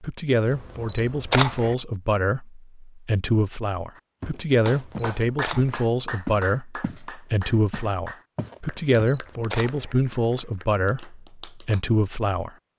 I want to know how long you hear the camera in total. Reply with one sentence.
The camera can be heard for 4 seconds in total.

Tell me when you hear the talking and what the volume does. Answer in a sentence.
You can hear the talking from 0.0 to 12.5 s, at a steady volume.